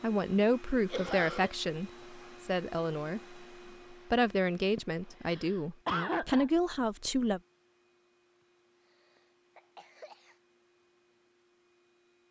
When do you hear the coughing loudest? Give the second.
6 s.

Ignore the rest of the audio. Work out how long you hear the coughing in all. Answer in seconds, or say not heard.
4 s.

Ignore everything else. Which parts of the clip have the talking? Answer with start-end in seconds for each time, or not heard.
0.0-7.4.